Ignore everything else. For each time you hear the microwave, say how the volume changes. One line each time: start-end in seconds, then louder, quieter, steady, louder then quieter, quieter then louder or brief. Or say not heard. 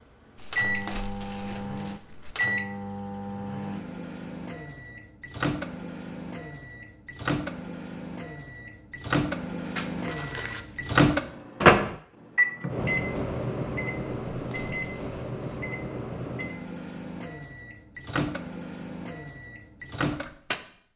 0.3-20.9 louder then quieter.